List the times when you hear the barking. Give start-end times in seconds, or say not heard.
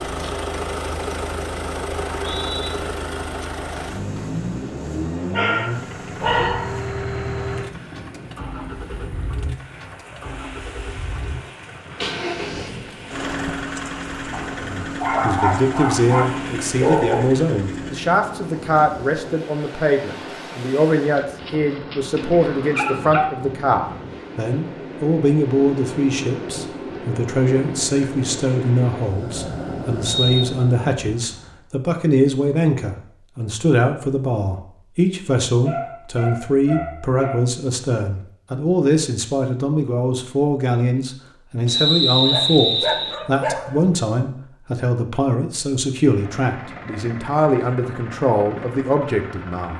5.3-6.8, 14.3-17.2, 21.1-23.4, 35.5-37.4, 42.2-44.0.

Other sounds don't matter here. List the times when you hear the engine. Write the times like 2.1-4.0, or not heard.
0.0-18.1, 46.0-49.7.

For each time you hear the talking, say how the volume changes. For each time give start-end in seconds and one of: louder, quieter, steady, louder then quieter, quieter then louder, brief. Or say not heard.
14.6-49.7 steady.